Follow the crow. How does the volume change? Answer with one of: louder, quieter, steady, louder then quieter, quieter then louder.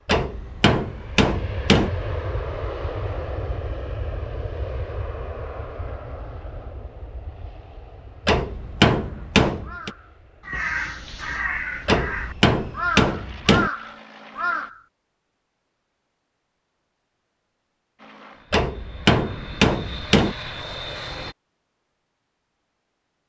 louder.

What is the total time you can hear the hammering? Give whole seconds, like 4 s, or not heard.
7 s.